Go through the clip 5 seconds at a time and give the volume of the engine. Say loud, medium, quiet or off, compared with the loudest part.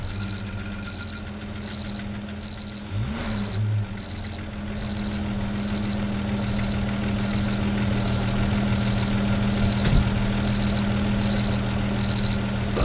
medium, loud, loud.